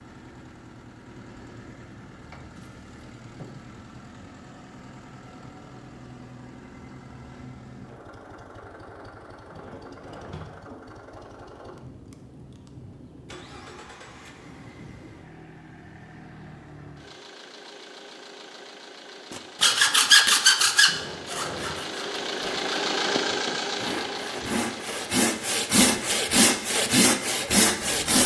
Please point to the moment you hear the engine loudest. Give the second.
23 s.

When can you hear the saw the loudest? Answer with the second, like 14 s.
20 s.